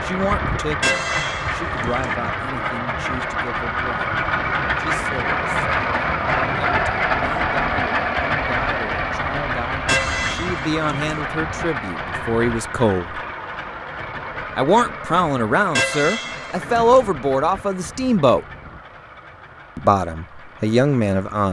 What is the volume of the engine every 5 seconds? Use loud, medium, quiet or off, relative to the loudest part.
loud, loud, medium, quiet, quiet.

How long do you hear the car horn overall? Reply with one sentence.
You can hear the car horn for 4 seconds altogether.